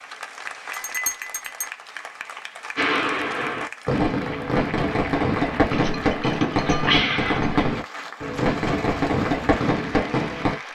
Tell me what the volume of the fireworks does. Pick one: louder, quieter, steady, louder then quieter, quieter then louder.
steady.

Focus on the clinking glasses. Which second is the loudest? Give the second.
7 s.